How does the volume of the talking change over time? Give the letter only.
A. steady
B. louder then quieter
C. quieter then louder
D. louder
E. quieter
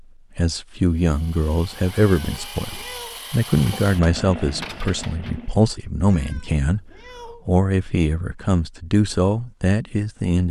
A.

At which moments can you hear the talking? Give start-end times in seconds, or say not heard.
0.3-10.4.